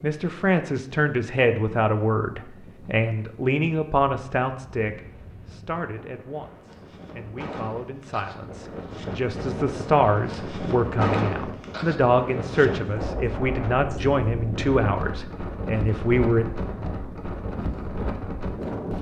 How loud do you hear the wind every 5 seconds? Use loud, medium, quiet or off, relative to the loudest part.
quiet, medium, loud, loud.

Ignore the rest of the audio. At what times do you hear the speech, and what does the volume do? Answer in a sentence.
The speech can be heard from 0.0 to 16.4 s, getting quieter then louder.